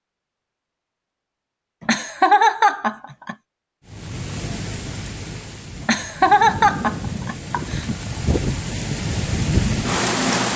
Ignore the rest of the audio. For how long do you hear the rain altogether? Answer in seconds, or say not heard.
7 s.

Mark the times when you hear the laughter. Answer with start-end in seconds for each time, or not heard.
1.8-3.4, 5.8-7.8.